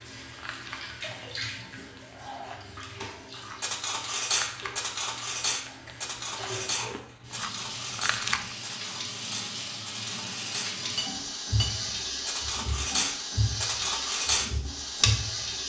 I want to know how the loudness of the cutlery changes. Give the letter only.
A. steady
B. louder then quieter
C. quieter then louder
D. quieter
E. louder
C.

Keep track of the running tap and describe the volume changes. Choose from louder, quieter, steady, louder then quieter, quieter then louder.
quieter then louder.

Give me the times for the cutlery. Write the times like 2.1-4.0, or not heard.
3.6-15.1.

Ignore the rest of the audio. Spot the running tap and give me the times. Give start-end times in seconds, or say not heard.
0.0-15.6.